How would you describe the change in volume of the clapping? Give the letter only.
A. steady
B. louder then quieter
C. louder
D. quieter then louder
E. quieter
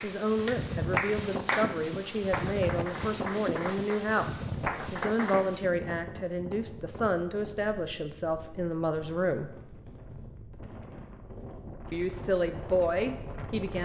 D.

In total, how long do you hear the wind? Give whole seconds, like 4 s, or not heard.
14 s.